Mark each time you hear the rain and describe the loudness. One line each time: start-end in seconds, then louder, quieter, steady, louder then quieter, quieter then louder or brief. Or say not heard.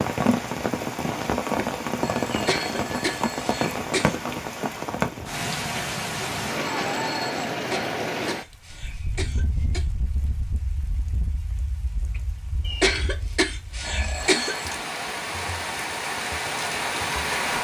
0.0-17.5 quieter then louder.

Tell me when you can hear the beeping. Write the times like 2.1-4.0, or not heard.
2.0-3.5, 6.6-7.5, 13.8-14.8.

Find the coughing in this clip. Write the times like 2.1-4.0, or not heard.
2.3-4.2, 7.5-9.8, 12.7-14.6.